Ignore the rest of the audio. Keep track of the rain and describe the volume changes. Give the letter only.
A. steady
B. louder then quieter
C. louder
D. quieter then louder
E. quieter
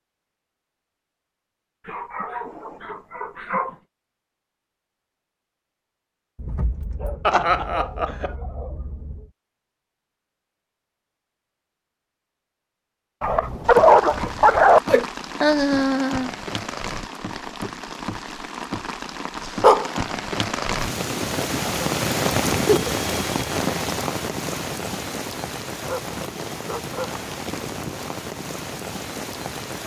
B.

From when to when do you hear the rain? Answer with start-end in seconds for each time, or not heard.
13.6-29.8.